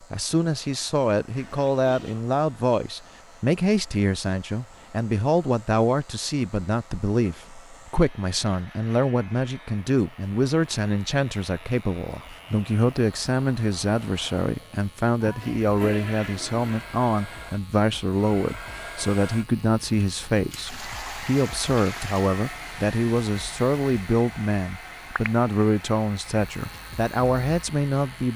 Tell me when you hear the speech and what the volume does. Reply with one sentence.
You can hear the speech from 0.1 to 28.3 s, at a steady volume.